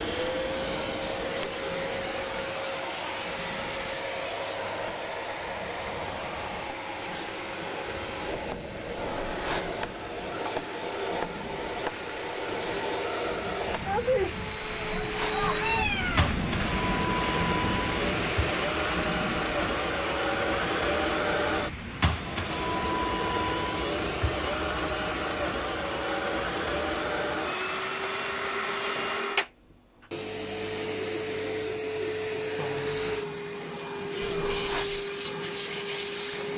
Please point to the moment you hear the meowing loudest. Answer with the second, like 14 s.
16 s.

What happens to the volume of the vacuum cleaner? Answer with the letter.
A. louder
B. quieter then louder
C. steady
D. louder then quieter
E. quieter
C.